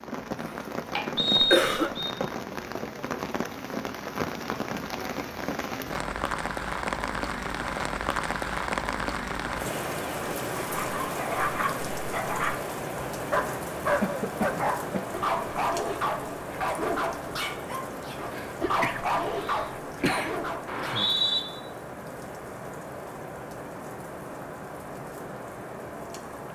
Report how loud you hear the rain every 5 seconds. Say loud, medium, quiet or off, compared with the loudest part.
loud, loud, loud, medium, medium, medium.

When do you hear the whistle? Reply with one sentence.
You can hear the whistle from 1.1 to 2.1 s and from 20.6 to 21.4 s.